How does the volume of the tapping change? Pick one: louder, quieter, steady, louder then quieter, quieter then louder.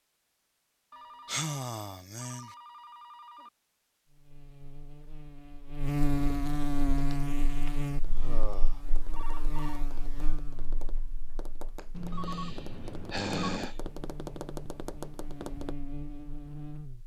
louder.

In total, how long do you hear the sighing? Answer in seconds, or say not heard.
4 s.